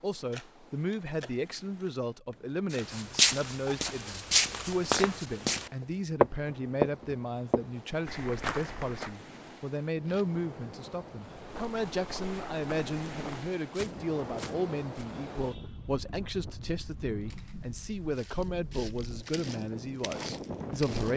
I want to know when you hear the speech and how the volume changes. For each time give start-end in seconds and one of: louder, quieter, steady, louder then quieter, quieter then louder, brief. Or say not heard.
0.0-21.1 steady.